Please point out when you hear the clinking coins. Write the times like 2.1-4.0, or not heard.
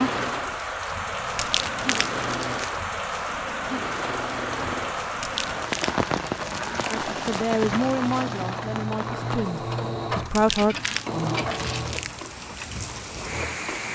10.6-12.0.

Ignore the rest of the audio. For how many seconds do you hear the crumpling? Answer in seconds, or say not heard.
6 s.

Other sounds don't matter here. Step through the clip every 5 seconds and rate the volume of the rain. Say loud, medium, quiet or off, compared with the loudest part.
loud, loud, medium.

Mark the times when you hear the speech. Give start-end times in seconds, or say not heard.
6.9-10.8.